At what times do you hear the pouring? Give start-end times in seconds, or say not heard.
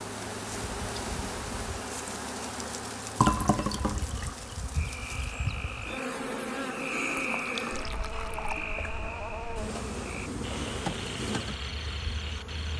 3.1-4.5, 7.3-8.7.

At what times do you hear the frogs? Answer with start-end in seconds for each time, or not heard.
4.7-12.7.